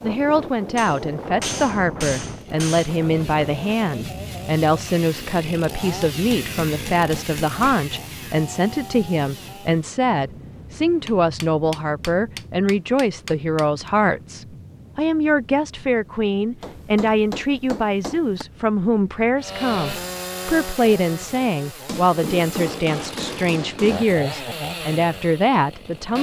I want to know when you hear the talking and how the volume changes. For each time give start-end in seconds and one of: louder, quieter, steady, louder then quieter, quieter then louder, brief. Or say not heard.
0.0-26.1 steady.